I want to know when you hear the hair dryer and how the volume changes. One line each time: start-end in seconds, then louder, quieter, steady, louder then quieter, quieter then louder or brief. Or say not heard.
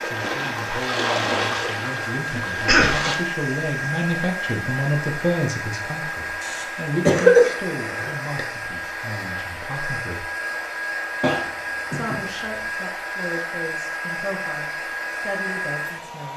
0.0-16.3 steady.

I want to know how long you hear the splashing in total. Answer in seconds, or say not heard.
3 s.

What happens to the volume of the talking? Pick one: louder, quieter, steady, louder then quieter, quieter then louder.
louder then quieter.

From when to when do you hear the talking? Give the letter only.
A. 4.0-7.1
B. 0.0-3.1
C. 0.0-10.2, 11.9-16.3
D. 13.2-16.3
C.